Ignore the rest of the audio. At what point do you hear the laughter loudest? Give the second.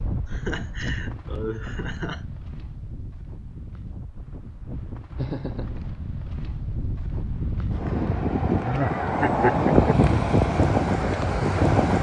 9 s.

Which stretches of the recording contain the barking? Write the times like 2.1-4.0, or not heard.
not heard.